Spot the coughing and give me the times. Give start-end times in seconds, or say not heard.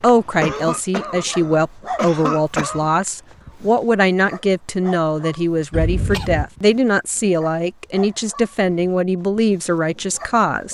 0.4-2.9, 5.7-6.5.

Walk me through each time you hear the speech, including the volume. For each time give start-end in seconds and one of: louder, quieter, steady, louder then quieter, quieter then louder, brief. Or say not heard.
0.0-10.6 steady.